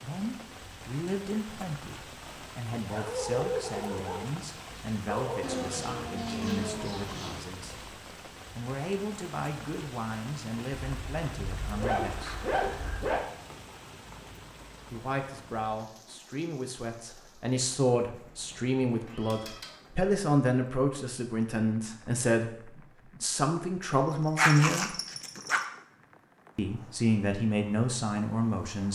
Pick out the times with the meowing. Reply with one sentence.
You can hear the meowing from 5.4 to 7.5 s and from 18.9 to 19.8 s.